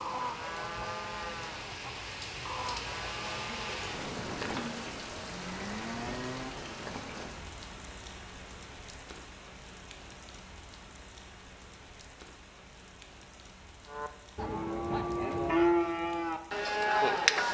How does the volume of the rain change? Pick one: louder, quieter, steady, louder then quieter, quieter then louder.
quieter.